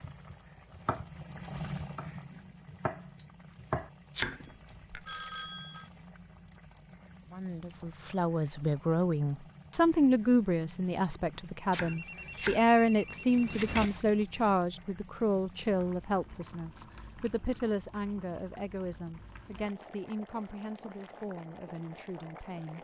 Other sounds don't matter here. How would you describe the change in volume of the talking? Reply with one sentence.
The loudness of the talking goes down.